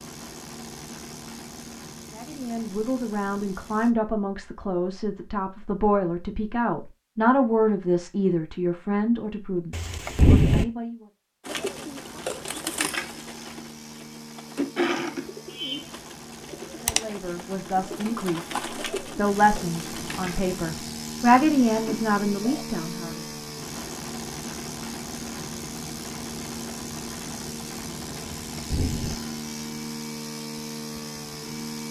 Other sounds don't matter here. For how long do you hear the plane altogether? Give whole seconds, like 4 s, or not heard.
24 s.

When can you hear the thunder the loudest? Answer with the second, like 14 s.
10 s.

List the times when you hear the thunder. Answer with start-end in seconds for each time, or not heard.
9.7-10.7, 28.5-29.1.